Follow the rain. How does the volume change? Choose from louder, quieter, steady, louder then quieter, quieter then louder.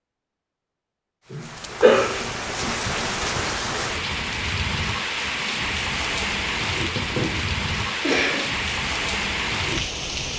steady.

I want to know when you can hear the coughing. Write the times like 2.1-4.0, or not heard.
1.3-2.8, 6.8-8.5.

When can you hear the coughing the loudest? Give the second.
2 s.